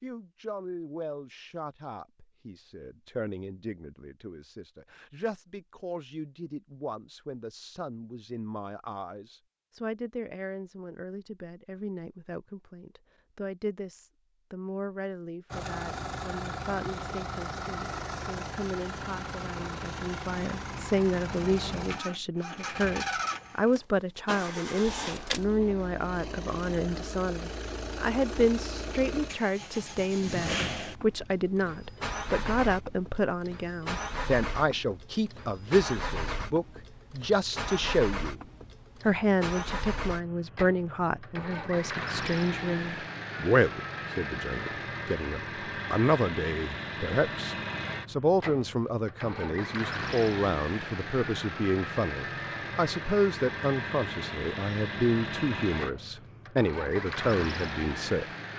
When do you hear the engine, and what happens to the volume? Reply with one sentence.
You can hear the engine from 15.5 to 58.5 s, at a steady volume.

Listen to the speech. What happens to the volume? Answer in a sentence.
The loudness of the speech goes up.